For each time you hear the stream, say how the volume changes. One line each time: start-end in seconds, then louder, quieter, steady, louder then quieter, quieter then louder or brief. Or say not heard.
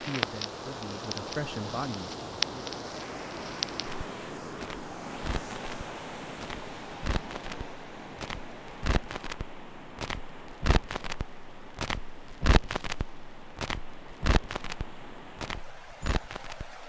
0.0-16.8 quieter.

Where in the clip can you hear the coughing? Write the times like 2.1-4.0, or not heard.
not heard.